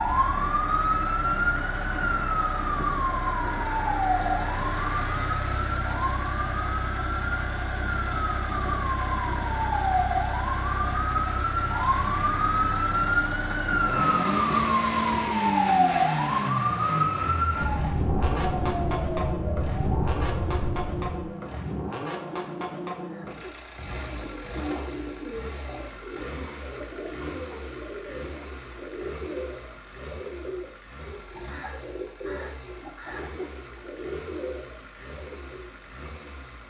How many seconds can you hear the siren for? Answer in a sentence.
You can hear the siren for 21 seconds altogether.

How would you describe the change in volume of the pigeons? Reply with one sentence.
The volume of the pigeons stays about the same.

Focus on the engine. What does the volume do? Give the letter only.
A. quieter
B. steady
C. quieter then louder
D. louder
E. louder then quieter
A.